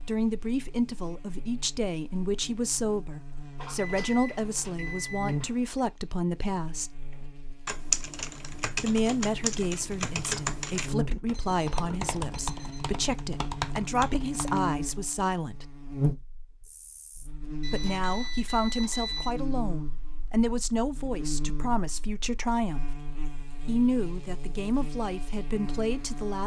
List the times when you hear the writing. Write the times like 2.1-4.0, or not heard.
not heard.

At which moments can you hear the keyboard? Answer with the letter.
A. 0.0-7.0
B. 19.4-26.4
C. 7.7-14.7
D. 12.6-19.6
C.